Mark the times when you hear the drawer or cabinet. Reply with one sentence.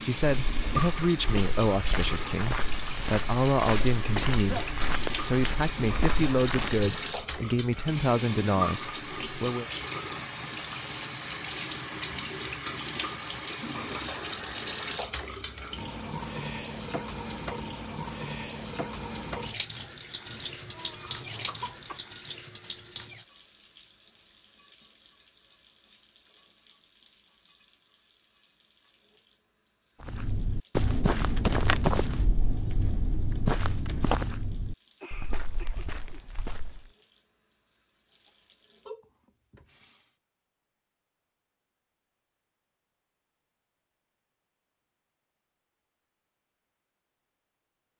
The drawer or cabinet can't be heard in this clip.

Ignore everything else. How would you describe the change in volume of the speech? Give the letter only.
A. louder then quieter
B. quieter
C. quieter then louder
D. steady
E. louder
D.